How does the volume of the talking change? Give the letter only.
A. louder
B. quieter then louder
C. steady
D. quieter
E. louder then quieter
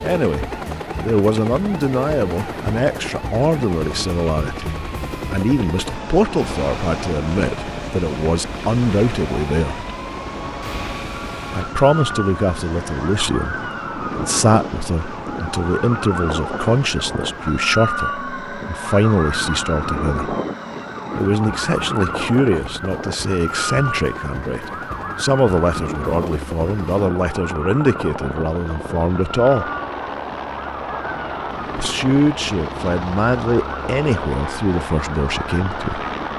C.